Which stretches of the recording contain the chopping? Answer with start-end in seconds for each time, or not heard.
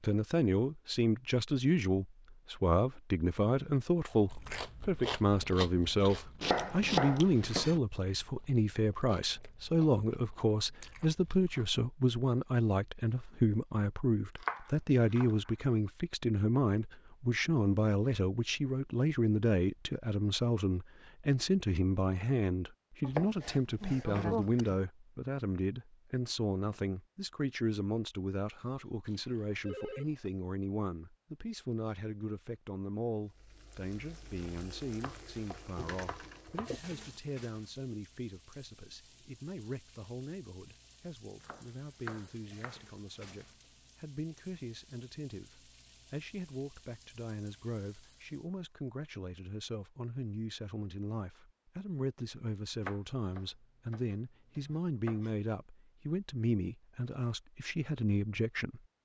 6.4-7.8, 14.4-15.3, 23.0-24.8, 35.0-36.8, 41.4-42.9, 52.8-55.3.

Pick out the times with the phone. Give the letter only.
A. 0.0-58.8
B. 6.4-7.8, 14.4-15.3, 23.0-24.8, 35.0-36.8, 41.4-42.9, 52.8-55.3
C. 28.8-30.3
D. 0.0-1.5
C.